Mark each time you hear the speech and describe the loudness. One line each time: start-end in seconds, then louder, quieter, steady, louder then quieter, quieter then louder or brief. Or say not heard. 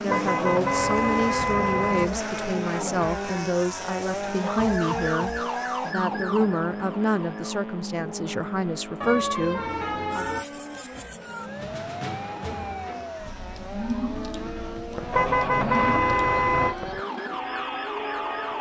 0.0-10.2 steady.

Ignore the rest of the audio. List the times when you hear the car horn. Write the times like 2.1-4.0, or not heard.
0.1-2.0, 9.0-10.4, 15.1-16.8.